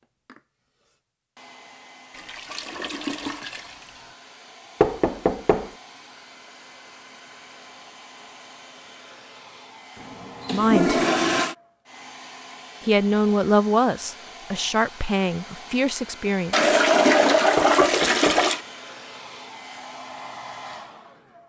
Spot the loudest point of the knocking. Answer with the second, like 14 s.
5 s.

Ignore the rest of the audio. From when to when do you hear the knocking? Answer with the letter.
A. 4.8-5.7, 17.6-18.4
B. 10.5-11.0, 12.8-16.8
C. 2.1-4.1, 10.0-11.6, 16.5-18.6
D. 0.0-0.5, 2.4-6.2
A.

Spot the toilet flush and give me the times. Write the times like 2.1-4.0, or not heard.
2.1-4.1, 10.0-11.6, 16.5-18.6.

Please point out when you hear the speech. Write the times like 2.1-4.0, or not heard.
10.5-11.0, 12.8-16.8.